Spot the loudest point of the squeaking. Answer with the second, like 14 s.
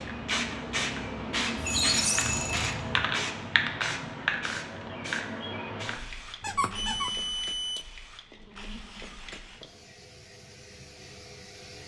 2 s.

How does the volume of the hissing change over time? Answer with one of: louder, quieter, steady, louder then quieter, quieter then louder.
quieter.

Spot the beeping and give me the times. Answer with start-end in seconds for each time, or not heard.
1.6-2.7, 6.8-7.8.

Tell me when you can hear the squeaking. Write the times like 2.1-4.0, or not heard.
1.6-3.0, 6.4-7.1.